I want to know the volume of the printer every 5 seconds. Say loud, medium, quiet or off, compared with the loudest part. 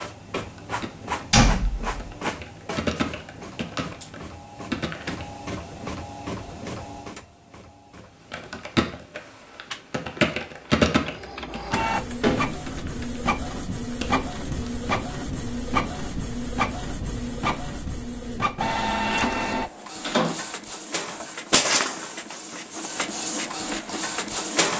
medium, medium, loud, loud, loud.